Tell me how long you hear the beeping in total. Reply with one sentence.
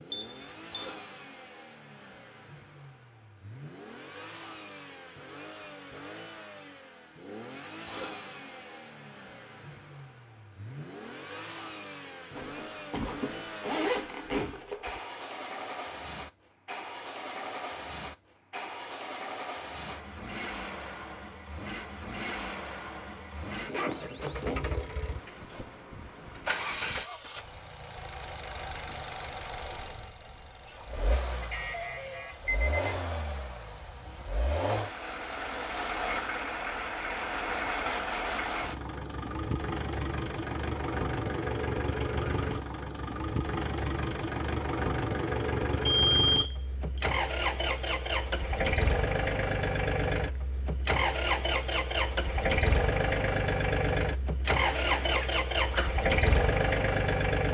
You can hear the beeping for 3 seconds altogether.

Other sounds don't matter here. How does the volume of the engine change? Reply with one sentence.
The volume of the engine goes up.